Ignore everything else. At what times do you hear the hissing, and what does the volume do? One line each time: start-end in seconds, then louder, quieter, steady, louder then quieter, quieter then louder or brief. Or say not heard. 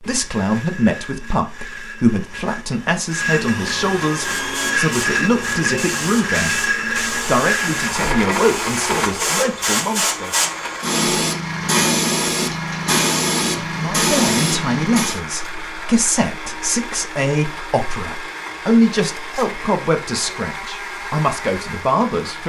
4.2-15.2 louder.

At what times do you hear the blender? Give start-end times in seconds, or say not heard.
0.0-22.4.